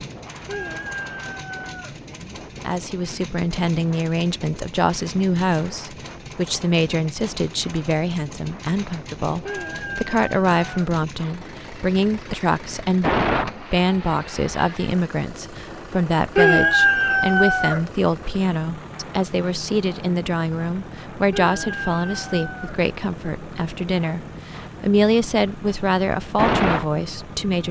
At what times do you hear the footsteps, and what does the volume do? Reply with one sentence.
The footsteps can't be heard in this clip.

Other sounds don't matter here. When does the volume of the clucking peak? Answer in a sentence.
The volume of the clucking peaks at 17 seconds.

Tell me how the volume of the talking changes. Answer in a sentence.
The volume of the talking stays about the same.